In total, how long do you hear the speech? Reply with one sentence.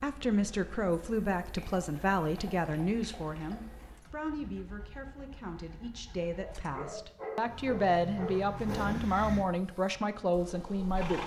The speech can be heard for 11 seconds in total.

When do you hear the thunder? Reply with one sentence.
The thunder can't be heard in this clip.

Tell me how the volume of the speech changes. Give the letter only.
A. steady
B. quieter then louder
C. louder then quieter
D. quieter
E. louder
B.